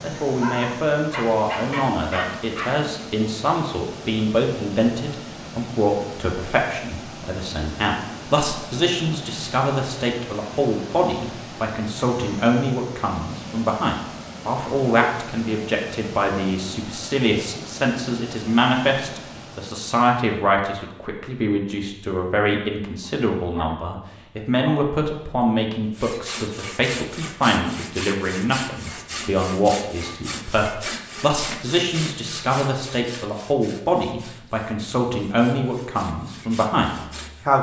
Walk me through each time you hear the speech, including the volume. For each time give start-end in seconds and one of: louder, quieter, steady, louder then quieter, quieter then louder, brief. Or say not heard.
0.0-37.5 steady.